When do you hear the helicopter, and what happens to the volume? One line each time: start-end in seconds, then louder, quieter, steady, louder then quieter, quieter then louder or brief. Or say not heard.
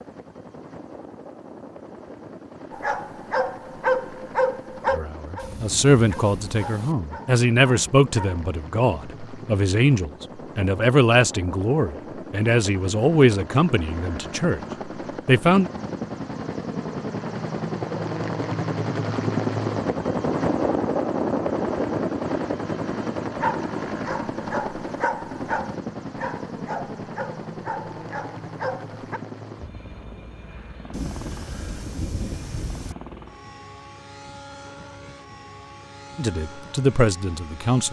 0.0-37.8 louder then quieter.